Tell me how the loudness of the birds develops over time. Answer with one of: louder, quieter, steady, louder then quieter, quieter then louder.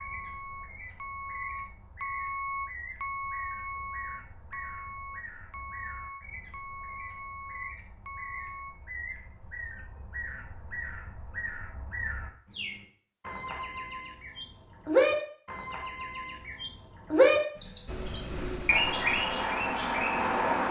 louder.